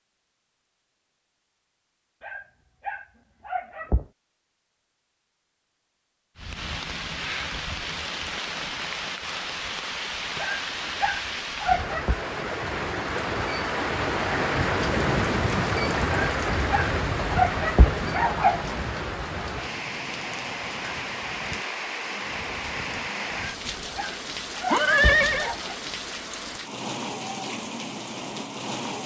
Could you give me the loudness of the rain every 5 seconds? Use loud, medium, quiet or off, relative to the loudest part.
off, medium, loud, loud, medium, medium.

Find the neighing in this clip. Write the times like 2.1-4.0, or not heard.
24.6-25.5.